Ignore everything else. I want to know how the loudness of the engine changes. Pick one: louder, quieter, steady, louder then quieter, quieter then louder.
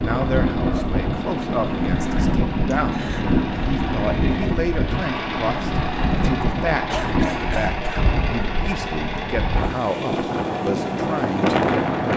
steady.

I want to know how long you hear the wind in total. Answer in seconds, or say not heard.
12 s.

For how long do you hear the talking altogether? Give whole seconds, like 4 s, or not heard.
12 s.